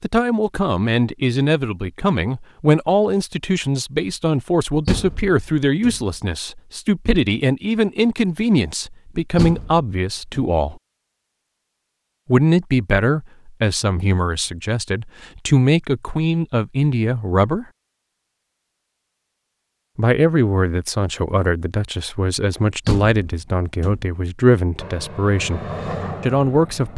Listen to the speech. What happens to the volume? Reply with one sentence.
The loudness of the speech stays about the same.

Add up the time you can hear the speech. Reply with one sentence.
The speech can be heard for 23 seconds in total.